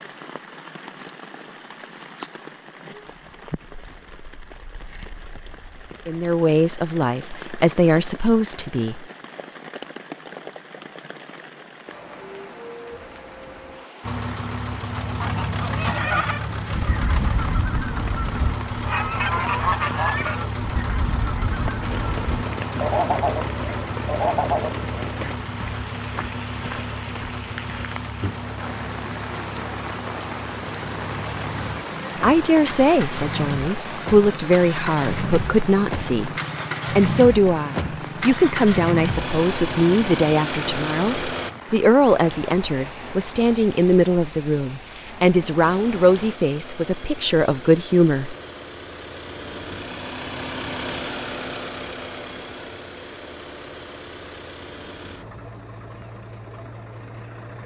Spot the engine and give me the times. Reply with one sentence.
The engine can be heard from 14.0 to 41.5 s and from 45.6 to 57.6 s.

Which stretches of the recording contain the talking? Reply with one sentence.
The talking can be heard from 6.0 to 9.1 s, from 32.2 to 36.3 s and from 36.9 to 48.4 s.